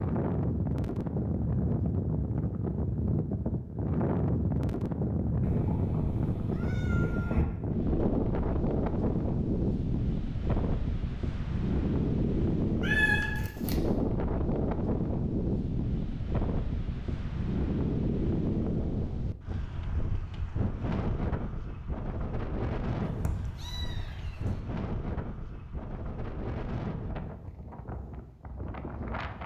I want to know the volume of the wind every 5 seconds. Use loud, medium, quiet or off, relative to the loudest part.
loud, loud, loud, loud, medium, medium.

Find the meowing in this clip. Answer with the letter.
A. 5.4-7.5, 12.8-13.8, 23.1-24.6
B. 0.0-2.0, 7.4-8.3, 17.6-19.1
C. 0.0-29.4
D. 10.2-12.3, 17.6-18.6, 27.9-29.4
A.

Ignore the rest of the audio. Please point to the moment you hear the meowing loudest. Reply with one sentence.
The loudest moment of the meowing is at 13 seconds.